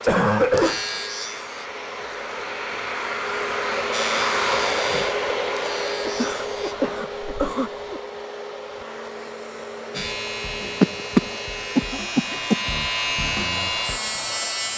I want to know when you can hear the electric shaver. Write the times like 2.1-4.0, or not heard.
0.0-1.7, 3.9-6.8, 9.9-14.7.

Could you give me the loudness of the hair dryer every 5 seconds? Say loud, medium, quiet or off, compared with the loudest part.
loud, loud, medium.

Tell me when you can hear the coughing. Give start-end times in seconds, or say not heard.
0.1-0.8, 6.0-8.0, 10.8-12.6.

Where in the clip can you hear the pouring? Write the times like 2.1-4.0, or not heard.
not heard.